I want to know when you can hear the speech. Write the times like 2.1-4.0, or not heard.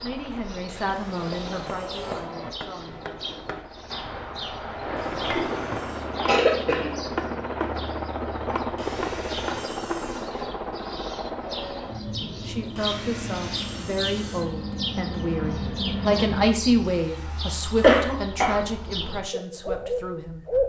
0.0-3.2, 12.2-20.4.